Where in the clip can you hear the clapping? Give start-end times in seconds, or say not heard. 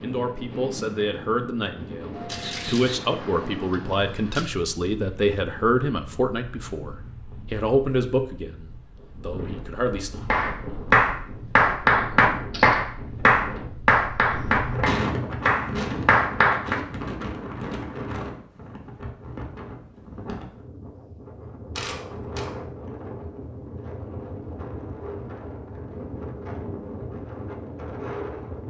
10.3-16.8.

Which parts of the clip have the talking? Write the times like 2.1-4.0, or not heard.
0.0-10.1.